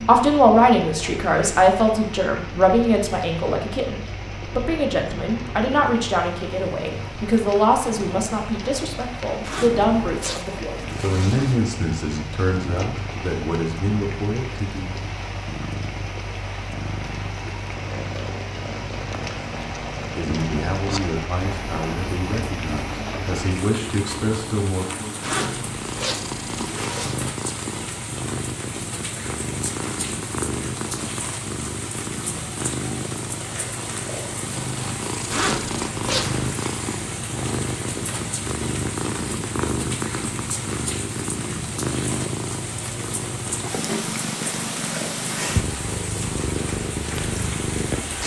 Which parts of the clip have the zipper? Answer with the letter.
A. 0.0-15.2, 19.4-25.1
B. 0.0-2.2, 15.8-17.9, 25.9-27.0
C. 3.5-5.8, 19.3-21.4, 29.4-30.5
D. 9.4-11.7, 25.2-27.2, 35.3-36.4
D.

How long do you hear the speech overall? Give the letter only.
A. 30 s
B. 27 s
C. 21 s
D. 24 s
C.